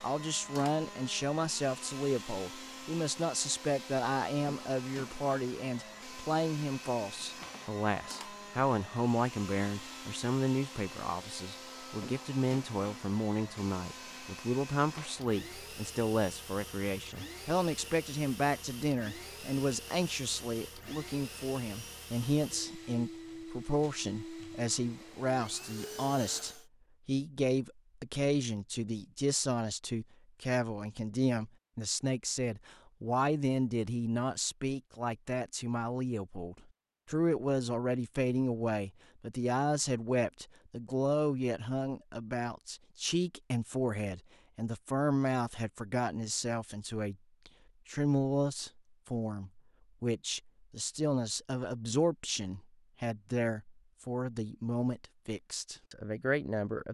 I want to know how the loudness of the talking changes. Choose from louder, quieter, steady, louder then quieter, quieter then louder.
steady.